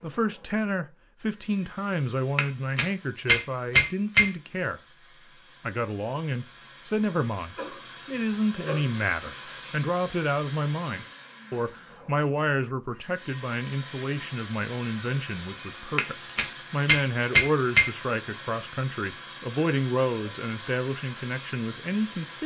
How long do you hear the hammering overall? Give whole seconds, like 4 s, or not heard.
4 s.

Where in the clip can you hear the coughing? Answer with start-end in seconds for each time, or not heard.
7.5-8.9.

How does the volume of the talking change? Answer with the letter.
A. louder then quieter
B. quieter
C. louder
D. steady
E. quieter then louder
D.